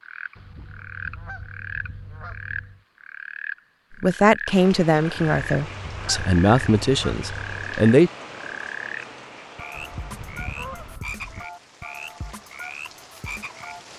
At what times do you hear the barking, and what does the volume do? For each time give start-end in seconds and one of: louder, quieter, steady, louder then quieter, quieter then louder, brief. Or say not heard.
not heard.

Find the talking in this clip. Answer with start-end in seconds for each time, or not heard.
4.0-8.1.